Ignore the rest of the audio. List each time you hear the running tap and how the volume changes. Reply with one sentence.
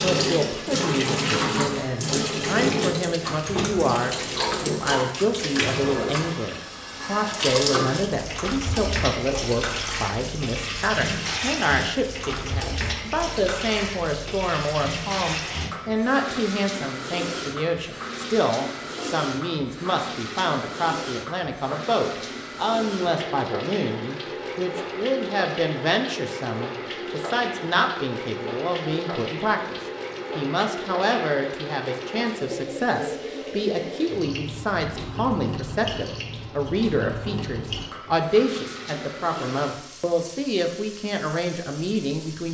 The running tap can be heard from 0.0 to 42.4 s, getting quieter.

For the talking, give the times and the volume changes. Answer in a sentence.
You can hear the talking from 0.0 to 42.4 s, at a steady volume.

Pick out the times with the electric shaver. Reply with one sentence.
The electric shaver can't be heard in this clip.